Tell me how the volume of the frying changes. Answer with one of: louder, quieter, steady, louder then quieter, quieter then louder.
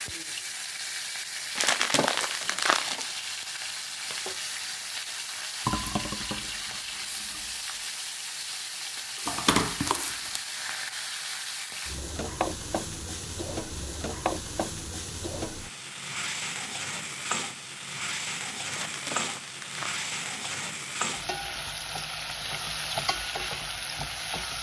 steady.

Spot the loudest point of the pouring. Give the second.
6 s.